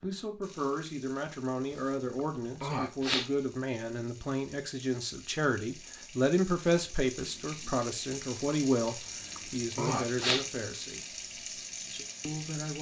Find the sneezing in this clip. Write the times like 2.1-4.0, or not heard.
1.7-3.3, 8.8-10.4.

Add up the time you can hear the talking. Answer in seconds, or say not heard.
12 s.